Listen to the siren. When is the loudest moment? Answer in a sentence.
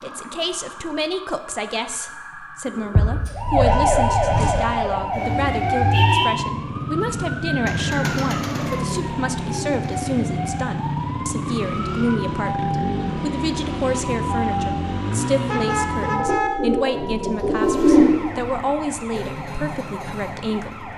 The volume of the siren peaks at 4 seconds.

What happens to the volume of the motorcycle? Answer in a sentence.
The loudness of the motorcycle stays about the same.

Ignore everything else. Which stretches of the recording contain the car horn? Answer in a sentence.
The car horn can be heard from 3.6 to 4.7 s, from 7.5 to 8.5 s and from 15.4 to 16.5 s.